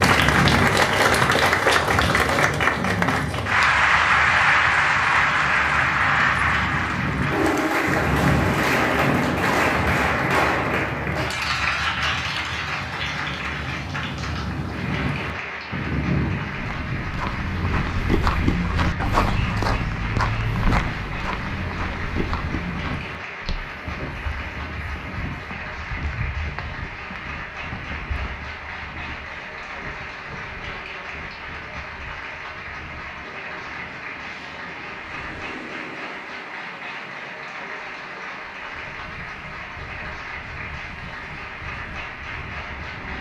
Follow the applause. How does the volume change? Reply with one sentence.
The volume of the applause goes down.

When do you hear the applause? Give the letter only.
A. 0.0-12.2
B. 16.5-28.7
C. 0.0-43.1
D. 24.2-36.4
C.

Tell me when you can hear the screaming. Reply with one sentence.
The screaming can't be heard in this clip.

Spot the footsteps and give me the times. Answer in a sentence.
You can hear the footsteps from 16.5 to 28.7 s.